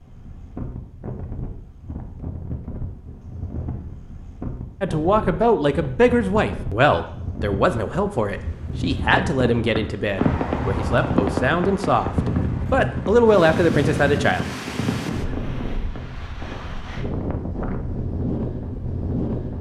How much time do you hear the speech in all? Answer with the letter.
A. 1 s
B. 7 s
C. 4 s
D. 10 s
D.